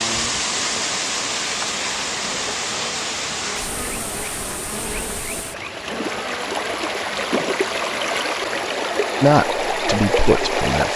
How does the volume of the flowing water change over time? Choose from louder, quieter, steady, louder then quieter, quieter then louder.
quieter then louder.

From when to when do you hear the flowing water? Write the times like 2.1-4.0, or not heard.
0.0-10.9.